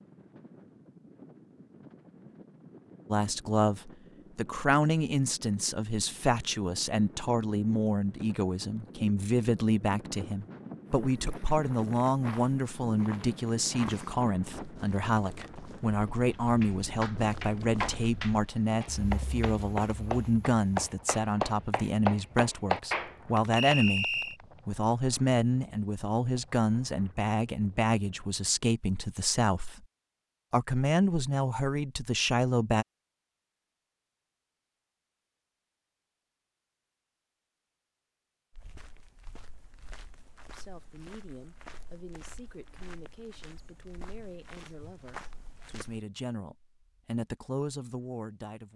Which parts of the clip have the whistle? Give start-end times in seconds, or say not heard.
23.6-24.4.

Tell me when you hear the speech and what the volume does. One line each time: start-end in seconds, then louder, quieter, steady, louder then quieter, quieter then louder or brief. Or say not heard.
3.1-29.9 steady
30.5-32.9 brief
40.5-48.7 louder.